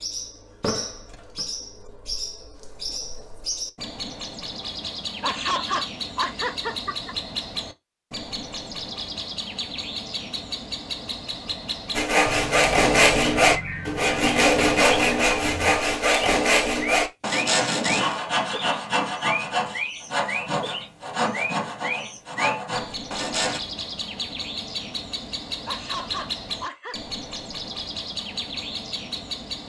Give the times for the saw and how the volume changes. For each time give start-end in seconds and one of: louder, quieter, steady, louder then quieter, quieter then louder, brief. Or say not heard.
11.9-23.6 quieter.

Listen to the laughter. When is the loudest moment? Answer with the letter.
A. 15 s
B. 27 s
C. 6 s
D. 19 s
C.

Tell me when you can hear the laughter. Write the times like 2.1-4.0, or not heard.
5.2-7.2, 25.6-27.0.